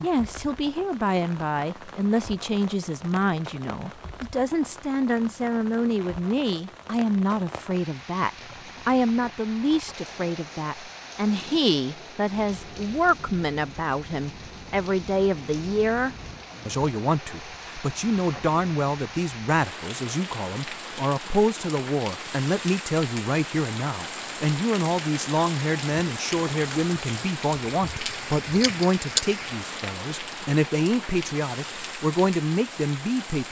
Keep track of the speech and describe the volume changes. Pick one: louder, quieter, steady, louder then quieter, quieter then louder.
steady.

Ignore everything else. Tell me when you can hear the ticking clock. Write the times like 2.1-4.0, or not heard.
not heard.